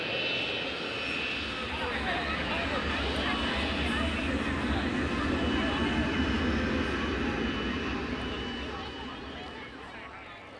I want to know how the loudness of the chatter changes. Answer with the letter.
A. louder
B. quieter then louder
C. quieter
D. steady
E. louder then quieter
C.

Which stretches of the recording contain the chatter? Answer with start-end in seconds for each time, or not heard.
1.4-10.5.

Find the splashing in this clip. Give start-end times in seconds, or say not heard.
not heard.